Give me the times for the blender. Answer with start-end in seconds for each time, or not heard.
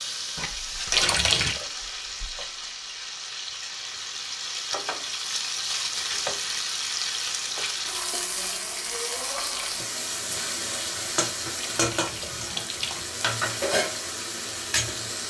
not heard.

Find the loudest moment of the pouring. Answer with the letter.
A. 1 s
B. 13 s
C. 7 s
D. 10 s
A.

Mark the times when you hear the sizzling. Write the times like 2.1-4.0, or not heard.
0.0-15.2.